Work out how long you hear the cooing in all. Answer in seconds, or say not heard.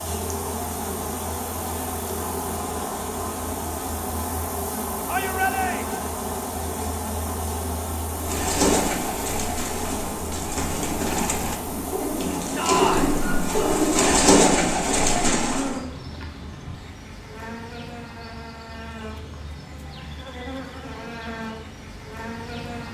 8 s.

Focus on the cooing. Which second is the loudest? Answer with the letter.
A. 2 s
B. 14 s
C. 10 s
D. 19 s
B.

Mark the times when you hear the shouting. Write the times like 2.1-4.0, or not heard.
5.0-6.1, 12.6-13.2.